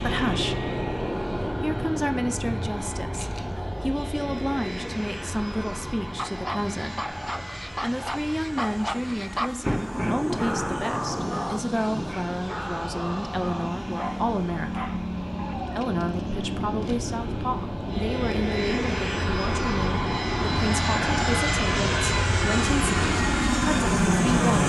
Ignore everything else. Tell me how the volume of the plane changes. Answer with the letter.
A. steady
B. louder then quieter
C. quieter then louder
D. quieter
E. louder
C.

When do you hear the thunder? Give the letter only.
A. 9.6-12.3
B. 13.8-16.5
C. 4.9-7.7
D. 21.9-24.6
A.